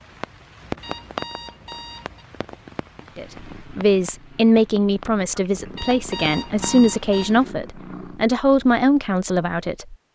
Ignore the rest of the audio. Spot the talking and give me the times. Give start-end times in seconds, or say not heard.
3.1-9.9.